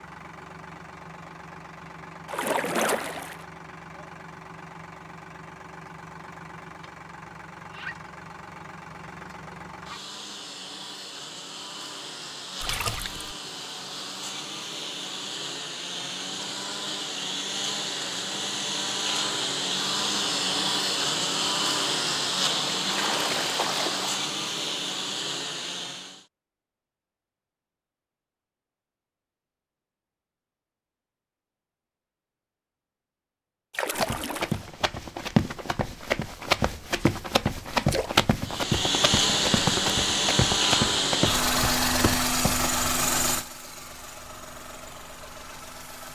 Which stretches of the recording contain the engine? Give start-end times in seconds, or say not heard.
0.0-26.2, 38.5-46.1.